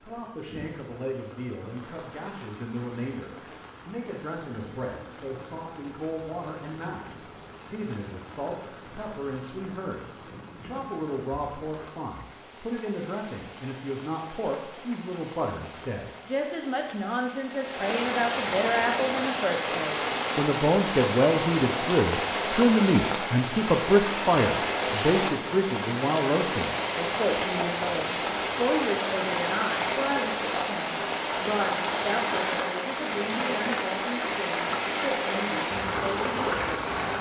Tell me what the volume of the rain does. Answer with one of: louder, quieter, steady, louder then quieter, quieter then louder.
louder.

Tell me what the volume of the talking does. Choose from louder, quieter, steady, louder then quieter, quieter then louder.
louder then quieter.